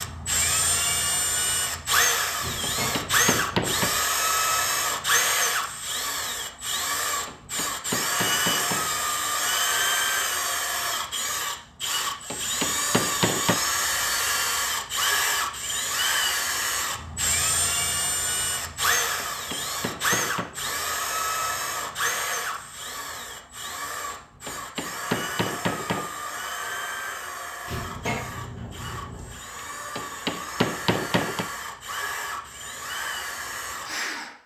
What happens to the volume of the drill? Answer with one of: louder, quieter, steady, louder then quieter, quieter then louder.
quieter.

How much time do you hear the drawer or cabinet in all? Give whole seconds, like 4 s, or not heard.
3 s.